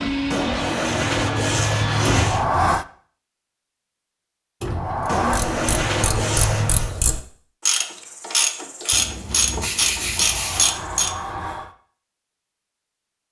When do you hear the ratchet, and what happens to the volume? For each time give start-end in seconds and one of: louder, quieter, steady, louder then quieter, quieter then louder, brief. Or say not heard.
5.2-11.2 louder.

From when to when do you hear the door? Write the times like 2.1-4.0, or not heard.
2.0-2.9, 4.6-5.4, 10.0-11.7.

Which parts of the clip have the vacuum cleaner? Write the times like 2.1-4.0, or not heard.
0.0-2.2.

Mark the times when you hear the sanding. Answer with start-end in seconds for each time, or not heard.
0.3-2.5, 5.0-7.0, 8.9-10.8.